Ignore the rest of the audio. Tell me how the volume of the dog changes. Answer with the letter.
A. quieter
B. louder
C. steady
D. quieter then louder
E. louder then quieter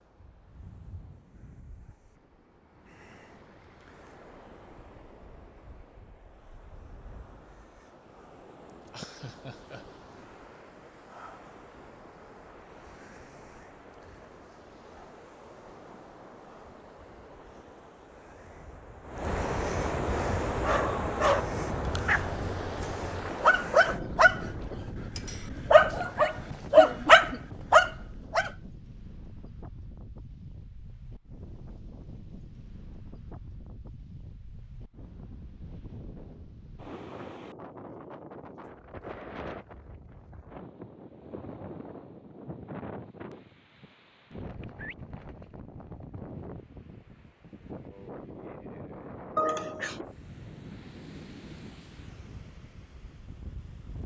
B.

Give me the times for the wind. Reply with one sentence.
The wind can be heard from 0.0 to 54.0 s.